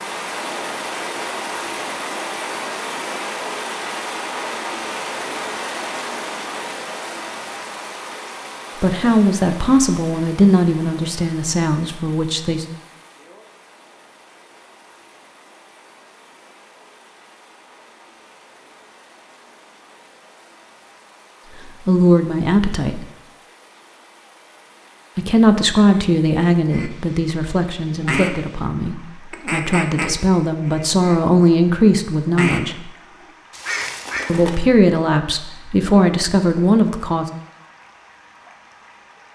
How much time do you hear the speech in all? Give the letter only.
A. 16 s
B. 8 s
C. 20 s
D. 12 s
A.